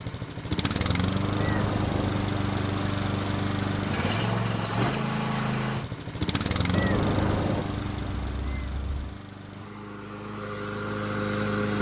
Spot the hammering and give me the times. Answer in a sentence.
The hammering can't be heard in this clip.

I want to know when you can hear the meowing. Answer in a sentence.
The meowing can be heard from 1.4 to 2.3 s and from 6.7 to 9.2 s.